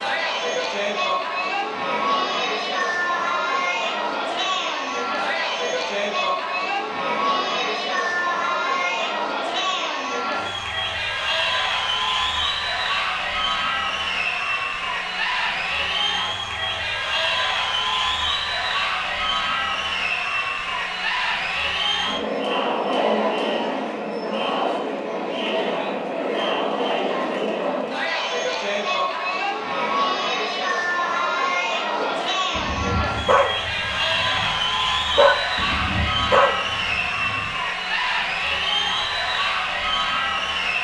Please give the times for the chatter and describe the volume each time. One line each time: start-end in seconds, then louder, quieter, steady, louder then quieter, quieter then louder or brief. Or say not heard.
0.0-40.7 steady.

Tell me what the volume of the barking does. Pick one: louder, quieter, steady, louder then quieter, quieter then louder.
louder.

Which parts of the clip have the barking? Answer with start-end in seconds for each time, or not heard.
31.9-37.5.